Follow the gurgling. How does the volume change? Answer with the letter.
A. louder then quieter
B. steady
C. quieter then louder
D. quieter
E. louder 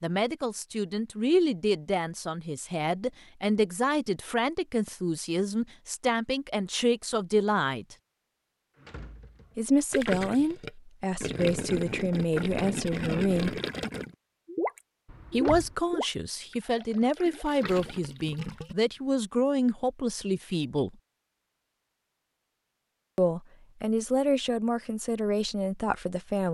D.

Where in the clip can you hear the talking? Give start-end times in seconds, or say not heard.
0.0-8.0, 9.6-13.6, 15.3-20.9, 23.1-26.4.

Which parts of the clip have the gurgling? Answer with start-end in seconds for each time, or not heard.
9.9-18.8.